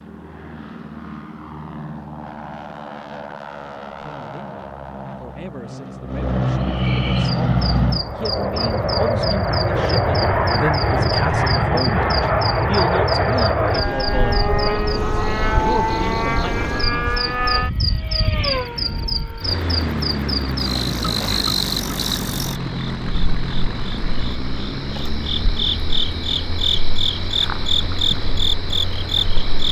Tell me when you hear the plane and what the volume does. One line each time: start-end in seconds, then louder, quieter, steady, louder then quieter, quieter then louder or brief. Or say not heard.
0.0-29.6 louder then quieter.